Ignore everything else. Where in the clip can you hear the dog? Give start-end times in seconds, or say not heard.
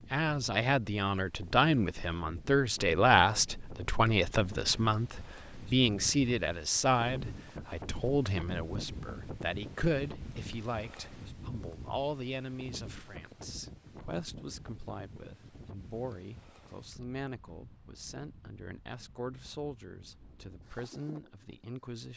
not heard.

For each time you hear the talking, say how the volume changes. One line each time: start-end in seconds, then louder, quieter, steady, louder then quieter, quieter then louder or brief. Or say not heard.
0.0-22.1 quieter.